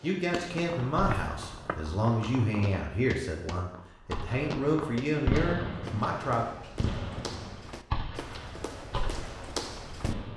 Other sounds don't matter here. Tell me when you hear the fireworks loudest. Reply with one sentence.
The volume of the fireworks peaks at 5 seconds.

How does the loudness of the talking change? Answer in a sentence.
The volume of the talking stays about the same.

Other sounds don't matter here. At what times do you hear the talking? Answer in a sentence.
The talking can be heard from 0.0 to 6.5 s.